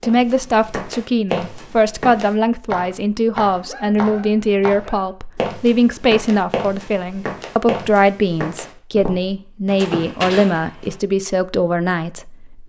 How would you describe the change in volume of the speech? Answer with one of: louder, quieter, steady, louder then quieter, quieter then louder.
steady.